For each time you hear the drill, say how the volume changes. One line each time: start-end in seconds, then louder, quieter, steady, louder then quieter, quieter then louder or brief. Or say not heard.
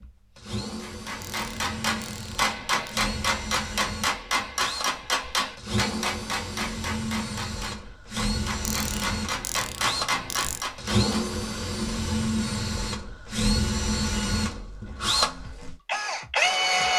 0.0-16.9 louder.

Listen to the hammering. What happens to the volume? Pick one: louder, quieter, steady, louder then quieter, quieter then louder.
quieter then louder.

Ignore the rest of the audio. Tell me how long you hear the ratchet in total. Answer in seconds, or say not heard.
4 s.